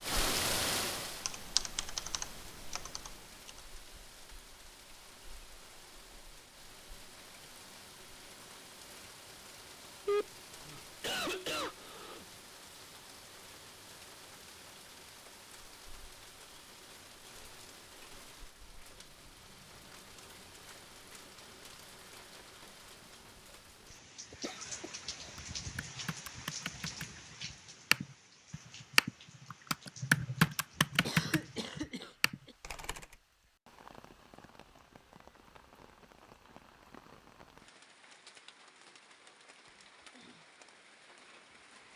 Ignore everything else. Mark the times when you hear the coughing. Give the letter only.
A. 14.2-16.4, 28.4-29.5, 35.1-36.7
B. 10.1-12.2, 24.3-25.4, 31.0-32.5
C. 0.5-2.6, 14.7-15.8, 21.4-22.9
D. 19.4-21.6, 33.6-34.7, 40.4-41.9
B.